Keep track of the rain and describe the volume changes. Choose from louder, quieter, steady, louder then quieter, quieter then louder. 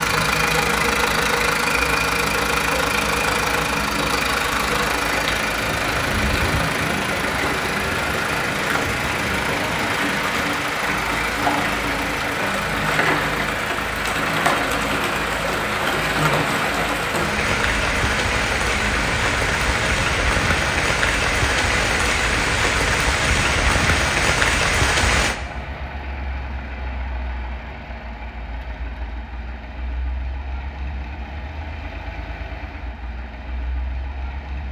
louder.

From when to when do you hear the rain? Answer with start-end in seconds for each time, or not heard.
0.0-25.4.